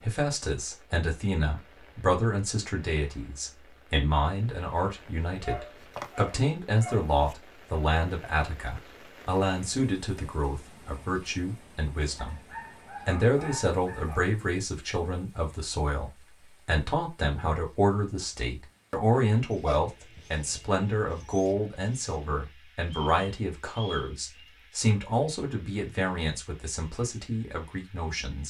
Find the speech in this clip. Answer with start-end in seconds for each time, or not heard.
0.0-12.4, 13.1-28.4.